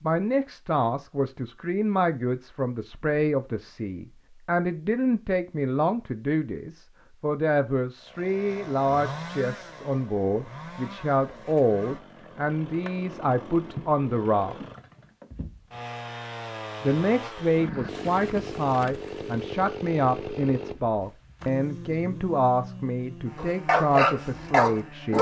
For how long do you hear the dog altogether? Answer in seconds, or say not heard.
2 s.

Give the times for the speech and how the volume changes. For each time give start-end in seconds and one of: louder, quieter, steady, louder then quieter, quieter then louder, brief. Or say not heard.
0.0-14.6 steady
16.8-25.1 steady.